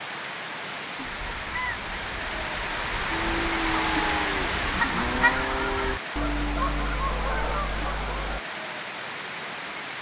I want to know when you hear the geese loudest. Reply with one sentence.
The volume of the geese peaks at 5 seconds.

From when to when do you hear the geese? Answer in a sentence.
The geese can be heard from 1.1 to 8.4 s.